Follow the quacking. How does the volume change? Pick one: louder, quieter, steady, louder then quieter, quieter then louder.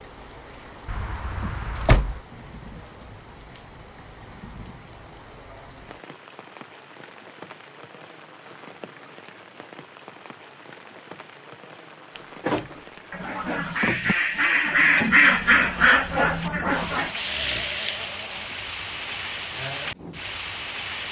louder then quieter.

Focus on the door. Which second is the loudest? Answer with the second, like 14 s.
2 s.